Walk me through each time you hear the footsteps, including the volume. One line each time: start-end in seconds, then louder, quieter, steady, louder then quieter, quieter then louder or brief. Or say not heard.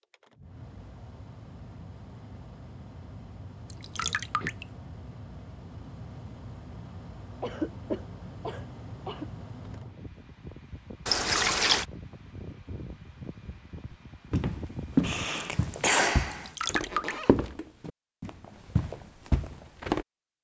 14.3-20.1 quieter then louder.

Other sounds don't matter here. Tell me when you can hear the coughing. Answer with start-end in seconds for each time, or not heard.
4.0-4.5, 7.4-9.3, 15.0-16.5.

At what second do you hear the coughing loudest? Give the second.
16 s.